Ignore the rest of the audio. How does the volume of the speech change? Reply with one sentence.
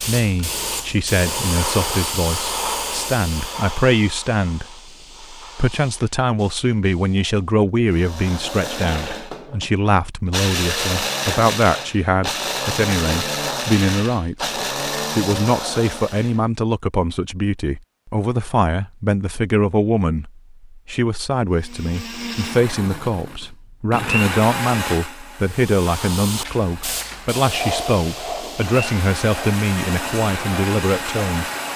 The loudness of the speech stays about the same.